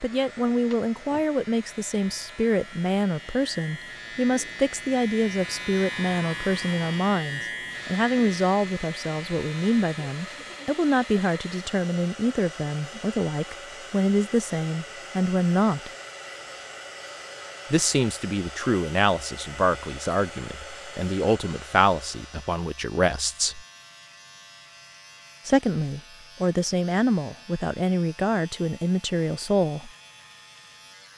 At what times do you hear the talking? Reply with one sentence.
You can hear the talking from 0.0 to 15.9 s, from 17.7 to 23.6 s and from 25.4 to 29.9 s.